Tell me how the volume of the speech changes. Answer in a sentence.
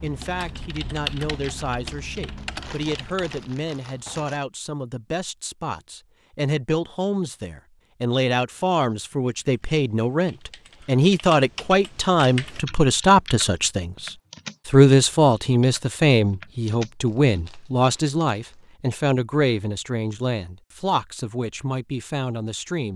The volume of the speech goes up, then down.